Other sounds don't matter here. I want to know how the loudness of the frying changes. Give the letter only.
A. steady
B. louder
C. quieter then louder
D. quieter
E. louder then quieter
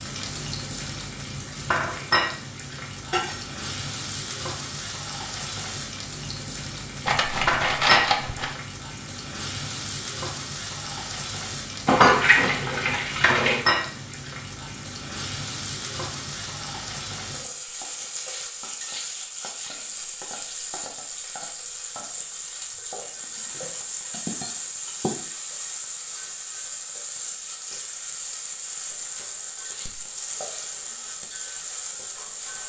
A.